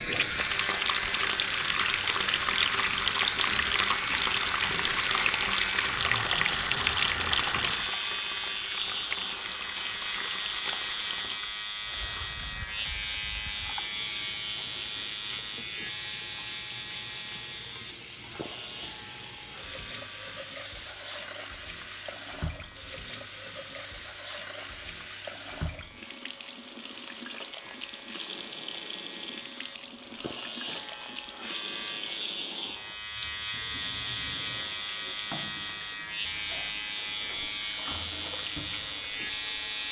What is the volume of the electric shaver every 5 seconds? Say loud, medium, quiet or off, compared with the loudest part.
loud, loud, loud, medium, quiet, quiet, loud, loud.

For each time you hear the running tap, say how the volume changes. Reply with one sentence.
You can hear the running tap from 0.0 to 39.8 s, getting quieter.